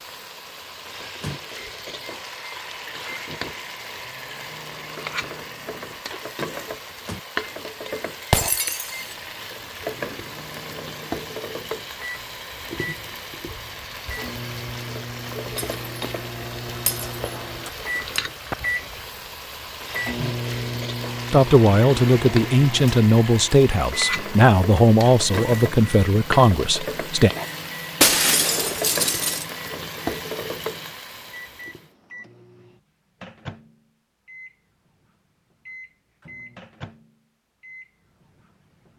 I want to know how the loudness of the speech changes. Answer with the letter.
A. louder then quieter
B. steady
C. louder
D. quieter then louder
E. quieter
B.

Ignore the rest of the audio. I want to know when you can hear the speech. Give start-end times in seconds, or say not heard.
21.3-27.3.